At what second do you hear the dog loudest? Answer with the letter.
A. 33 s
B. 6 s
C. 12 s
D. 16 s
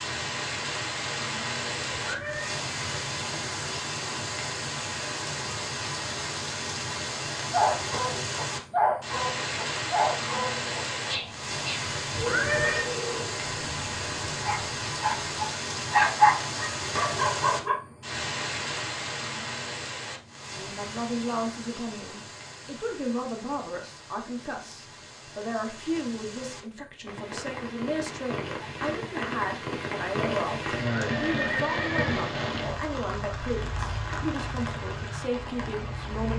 D.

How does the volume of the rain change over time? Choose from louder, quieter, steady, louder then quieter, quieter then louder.
quieter then louder.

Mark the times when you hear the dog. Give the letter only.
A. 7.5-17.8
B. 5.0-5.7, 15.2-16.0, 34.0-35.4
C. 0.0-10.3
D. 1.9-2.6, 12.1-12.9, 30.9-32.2
A.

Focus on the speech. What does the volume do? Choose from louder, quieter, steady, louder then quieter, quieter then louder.
steady.